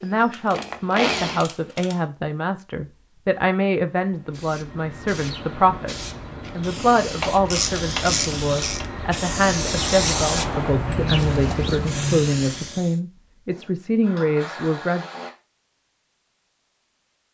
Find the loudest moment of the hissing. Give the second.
10 s.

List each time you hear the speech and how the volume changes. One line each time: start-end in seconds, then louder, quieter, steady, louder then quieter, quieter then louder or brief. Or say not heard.
0.0-15.1 steady.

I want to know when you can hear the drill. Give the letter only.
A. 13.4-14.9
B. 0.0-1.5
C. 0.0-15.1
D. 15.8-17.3
B.